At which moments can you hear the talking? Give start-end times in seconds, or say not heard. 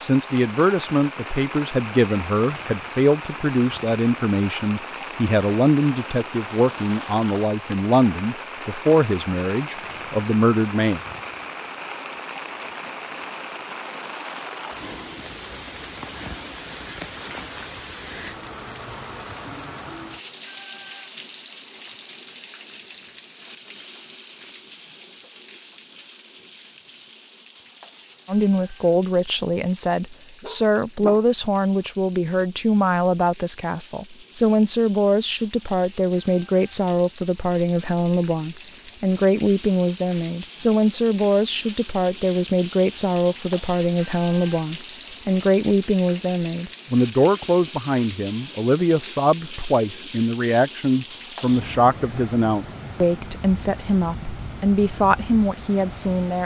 0.0-11.0, 28.2-56.4.